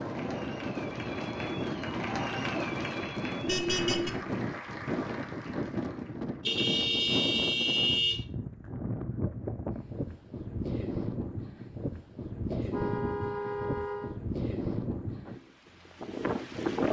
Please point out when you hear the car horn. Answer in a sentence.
You can hear the car horn from 3.5 to 4.1 s, from 6.4 to 8.2 s and from 12.4 to 14.2 s.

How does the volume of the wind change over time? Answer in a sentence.
The volume of the wind stays about the same.